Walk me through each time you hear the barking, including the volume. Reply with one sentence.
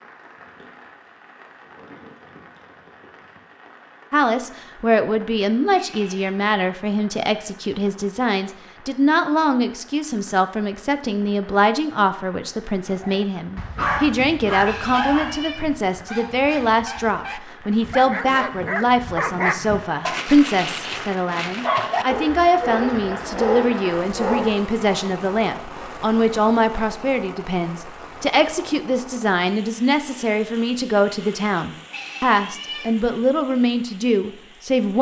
The barking can be heard from 12.8 to 24.6 s, getting quieter then louder.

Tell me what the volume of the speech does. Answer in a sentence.
The loudness of the speech stays about the same.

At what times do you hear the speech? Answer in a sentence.
You can hear the speech from 4.1 to 34.9 s.